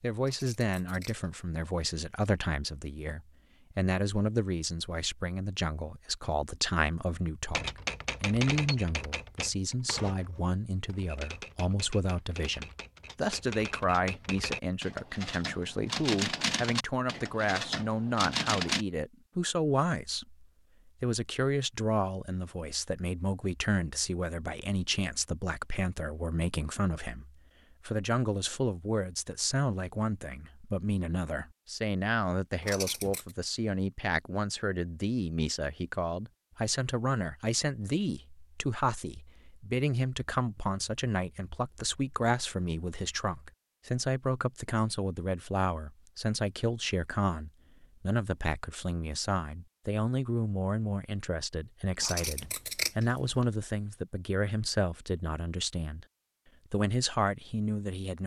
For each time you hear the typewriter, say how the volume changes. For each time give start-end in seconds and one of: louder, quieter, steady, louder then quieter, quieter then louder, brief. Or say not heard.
7.5-18.9 quieter then louder.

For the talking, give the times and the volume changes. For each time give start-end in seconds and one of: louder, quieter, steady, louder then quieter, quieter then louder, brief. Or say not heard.
0.0-56.0 steady
56.7-58.2 brief.